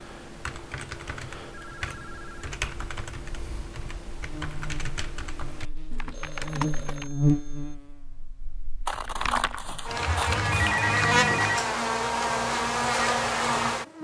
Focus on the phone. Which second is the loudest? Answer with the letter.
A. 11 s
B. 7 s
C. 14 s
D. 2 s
A.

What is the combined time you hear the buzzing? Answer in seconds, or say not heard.
10 s.